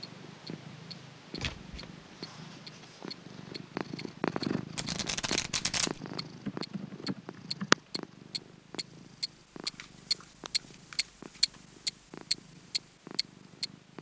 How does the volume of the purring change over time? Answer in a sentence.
The volume of the purring goes up, then down.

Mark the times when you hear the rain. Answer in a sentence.
The rain can't be heard in this clip.